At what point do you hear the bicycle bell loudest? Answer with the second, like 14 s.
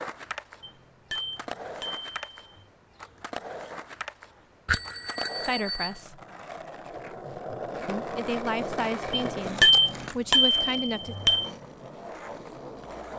10 s.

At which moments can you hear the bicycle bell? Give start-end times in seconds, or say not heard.
0.6-2.5, 4.7-6.0, 9.1-11.4.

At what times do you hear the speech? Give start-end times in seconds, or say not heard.
5.4-6.2, 7.8-11.2.